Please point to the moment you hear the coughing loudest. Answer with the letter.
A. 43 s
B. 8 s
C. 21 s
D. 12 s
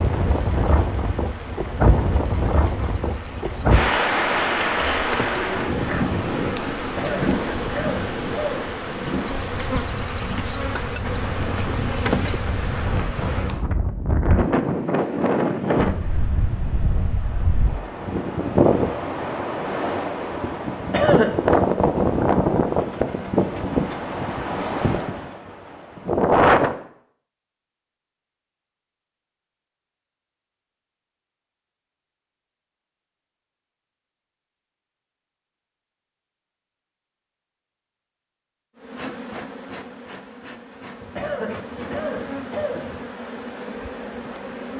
C.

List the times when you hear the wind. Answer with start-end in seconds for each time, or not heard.
0.0-26.8.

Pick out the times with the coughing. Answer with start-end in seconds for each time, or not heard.
6.8-8.8, 20.8-21.4, 41.0-43.0.